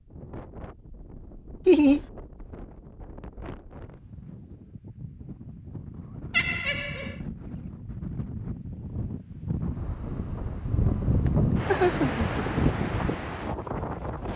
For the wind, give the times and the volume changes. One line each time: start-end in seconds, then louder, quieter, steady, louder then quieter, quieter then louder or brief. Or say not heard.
0.0-14.3 louder.